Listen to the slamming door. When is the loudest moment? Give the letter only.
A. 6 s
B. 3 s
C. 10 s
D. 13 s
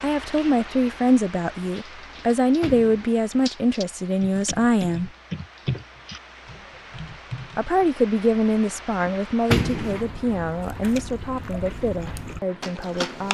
C.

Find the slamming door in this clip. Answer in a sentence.
You can hear the slamming door from 2.1 to 3.1 s and from 9.1 to 10.1 s.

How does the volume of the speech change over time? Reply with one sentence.
The loudness of the speech goes down.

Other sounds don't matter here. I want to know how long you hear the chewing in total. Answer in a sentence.
You can hear the chewing for 3 seconds altogether.